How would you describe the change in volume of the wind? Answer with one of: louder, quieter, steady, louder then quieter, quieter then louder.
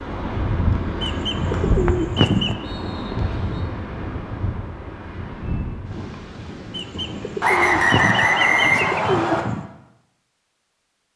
quieter.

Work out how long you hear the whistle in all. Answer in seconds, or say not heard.
4 s.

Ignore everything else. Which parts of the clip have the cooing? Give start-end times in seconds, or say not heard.
1.0-2.5, 6.7-9.7.